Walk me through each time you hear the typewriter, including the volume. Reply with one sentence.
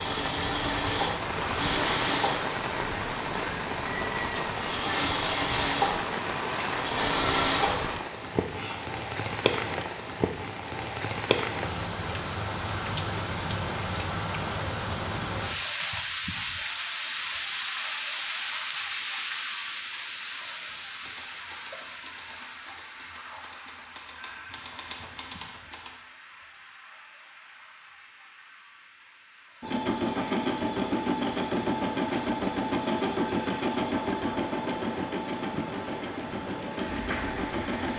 You can hear the typewriter from 20.6 to 25.9 s, getting louder.